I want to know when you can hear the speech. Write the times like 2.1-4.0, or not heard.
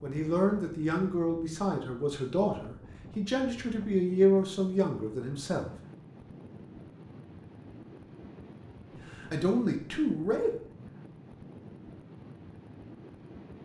0.0-5.7, 9.1-10.5.